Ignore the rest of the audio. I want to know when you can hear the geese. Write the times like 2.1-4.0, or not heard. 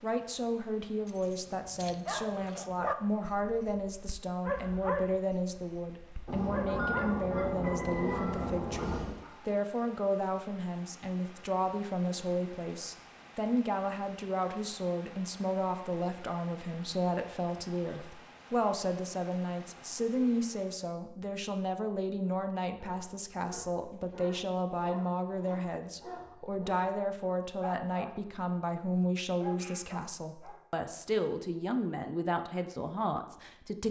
6.2-9.2.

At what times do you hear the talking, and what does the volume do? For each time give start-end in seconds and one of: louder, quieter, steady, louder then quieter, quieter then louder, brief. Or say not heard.
0.0-33.8 steady.